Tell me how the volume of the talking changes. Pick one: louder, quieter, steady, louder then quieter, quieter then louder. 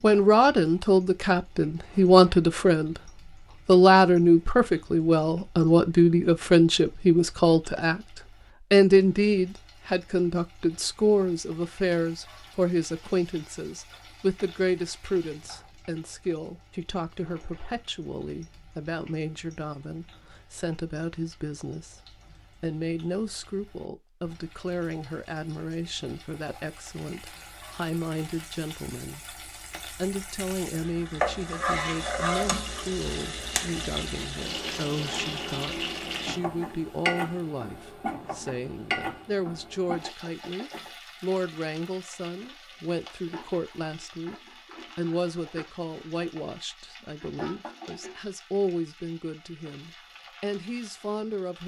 quieter.